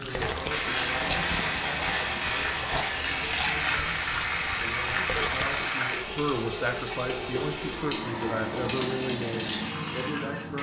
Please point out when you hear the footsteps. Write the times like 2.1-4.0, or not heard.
not heard.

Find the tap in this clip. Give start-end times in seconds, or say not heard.
0.0-10.5.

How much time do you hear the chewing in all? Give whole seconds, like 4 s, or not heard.
6 s.